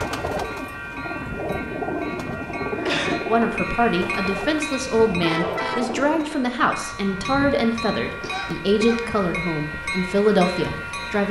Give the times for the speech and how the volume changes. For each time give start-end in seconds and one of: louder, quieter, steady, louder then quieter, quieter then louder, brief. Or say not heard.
3.2-11.2 steady.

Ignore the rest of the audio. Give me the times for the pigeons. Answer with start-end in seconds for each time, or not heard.
0.0-6.4.